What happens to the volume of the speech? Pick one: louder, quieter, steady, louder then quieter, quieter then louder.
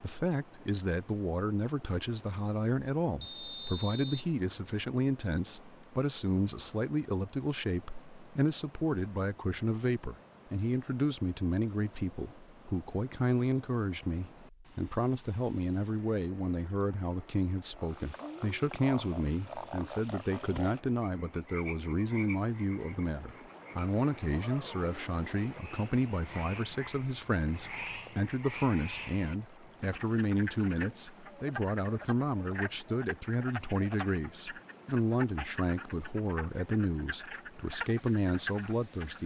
steady.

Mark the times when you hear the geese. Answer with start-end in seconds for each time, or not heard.
not heard.